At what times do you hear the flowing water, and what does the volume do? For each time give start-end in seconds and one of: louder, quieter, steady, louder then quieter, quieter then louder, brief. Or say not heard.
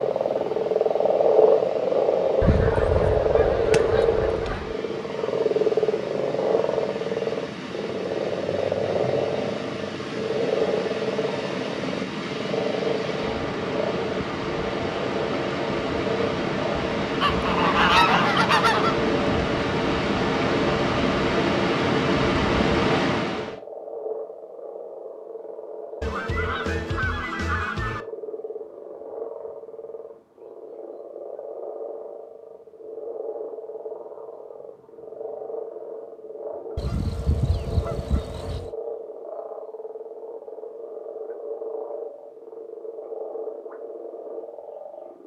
0.0-23.6 louder.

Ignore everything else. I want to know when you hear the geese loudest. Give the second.
18 s.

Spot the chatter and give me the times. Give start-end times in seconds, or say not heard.
not heard.